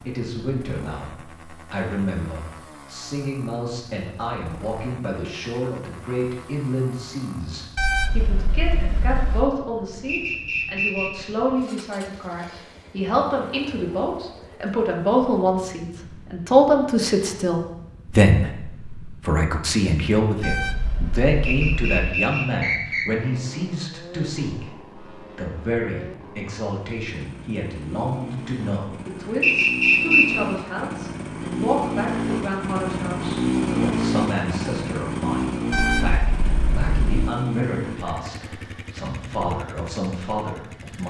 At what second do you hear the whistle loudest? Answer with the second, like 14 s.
30 s.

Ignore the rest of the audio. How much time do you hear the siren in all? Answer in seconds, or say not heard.
not heard.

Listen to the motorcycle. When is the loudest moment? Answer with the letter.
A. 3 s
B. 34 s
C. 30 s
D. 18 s
B.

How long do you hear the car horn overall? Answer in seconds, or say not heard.
5 s.